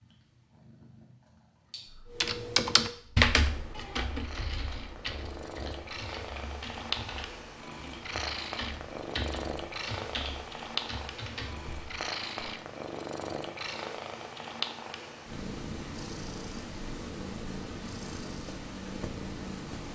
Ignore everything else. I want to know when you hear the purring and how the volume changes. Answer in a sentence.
You can hear the purring from 0.0 to 19.9 s, getting louder.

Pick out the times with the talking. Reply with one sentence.
The talking can't be heard in this clip.